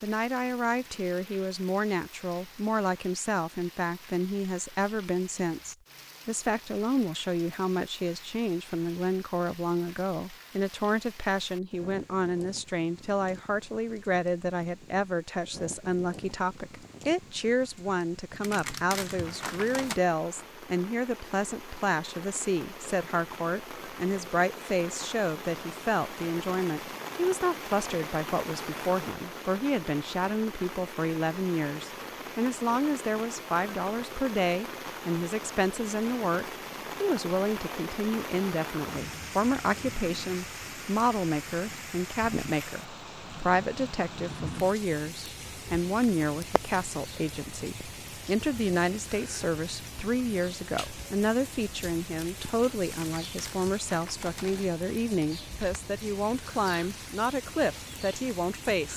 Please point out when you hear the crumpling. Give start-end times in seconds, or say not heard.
18.4-20.0, 53.0-54.7.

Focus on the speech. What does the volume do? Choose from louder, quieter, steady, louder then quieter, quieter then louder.
steady.